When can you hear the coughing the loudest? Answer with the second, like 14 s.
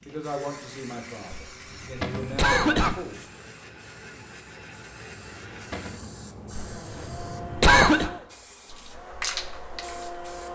8 s.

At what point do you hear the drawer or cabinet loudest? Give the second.
2 s.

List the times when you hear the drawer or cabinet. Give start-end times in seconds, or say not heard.
2.0-2.5, 5.7-6.2.